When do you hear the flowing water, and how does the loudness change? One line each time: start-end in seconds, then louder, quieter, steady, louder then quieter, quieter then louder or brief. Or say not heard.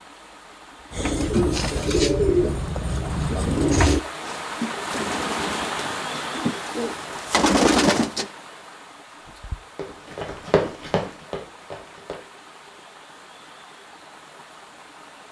0.0-15.2 louder then quieter.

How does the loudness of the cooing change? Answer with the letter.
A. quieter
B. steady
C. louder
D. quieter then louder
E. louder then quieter
D.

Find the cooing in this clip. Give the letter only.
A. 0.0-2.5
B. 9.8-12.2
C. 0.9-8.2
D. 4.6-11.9
C.